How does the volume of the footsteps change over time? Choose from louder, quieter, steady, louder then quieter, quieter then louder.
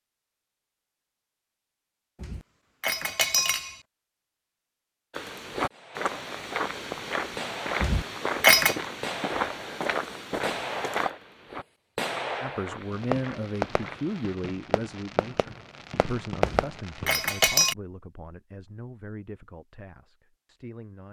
quieter.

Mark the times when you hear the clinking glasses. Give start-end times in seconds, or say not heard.
2.2-3.8, 7.8-8.8, 16.4-17.8.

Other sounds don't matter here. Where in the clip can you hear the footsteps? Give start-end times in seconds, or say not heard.
5.1-14.3.